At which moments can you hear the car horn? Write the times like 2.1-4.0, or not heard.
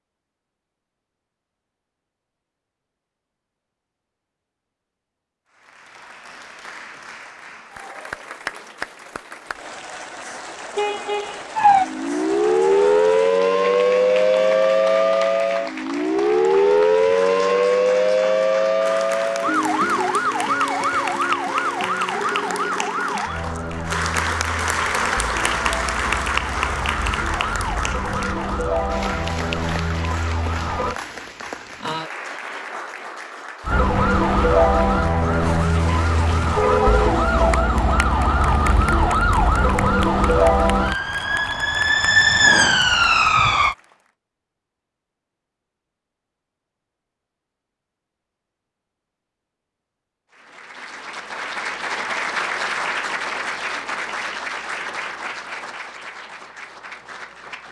10.8-11.4, 35.2-37.0.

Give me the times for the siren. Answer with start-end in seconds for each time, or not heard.
11.6-31.0, 33.6-43.8.